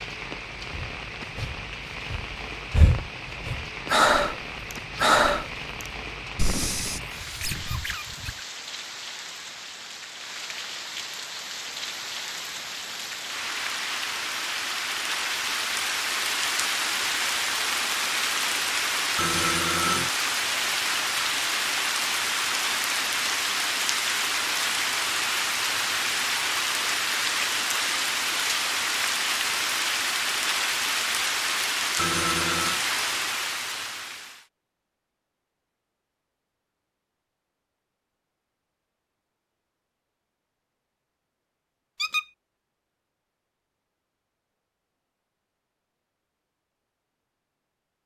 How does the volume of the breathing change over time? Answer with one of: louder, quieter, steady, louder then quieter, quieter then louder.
louder then quieter.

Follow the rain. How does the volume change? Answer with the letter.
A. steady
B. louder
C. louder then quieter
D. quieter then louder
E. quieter
B.